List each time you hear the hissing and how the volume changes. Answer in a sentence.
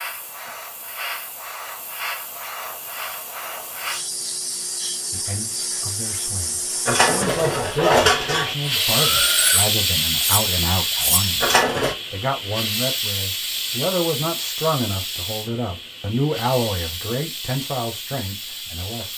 The hissing can be heard from 0.0 to 19.1 s, getting louder then quieter.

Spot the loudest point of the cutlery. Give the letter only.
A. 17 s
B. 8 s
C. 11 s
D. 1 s
B.